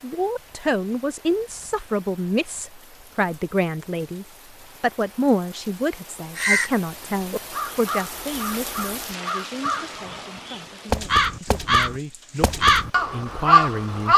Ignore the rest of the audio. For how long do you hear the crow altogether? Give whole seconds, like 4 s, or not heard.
8 s.